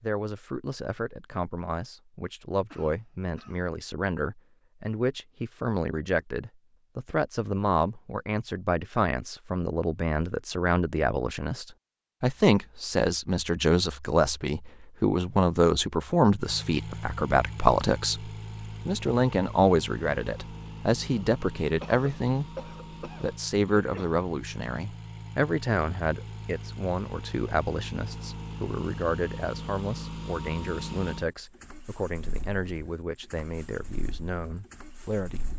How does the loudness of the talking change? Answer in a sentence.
The loudness of the talking goes up, then down.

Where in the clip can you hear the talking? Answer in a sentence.
The talking can be heard from 0.0 to 35.5 s.